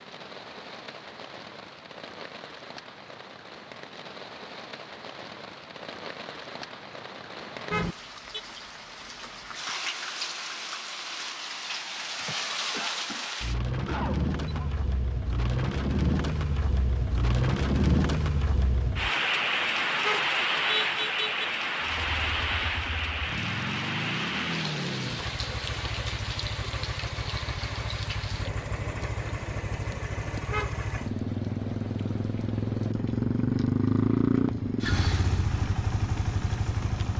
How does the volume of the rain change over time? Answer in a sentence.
The loudness of the rain goes up, then down.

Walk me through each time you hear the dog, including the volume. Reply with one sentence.
The dog can't be heard in this clip.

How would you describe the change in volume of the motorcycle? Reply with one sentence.
The loudness of the motorcycle goes up.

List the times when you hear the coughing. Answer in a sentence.
The coughing can be heard from 12.2 to 14.8 s.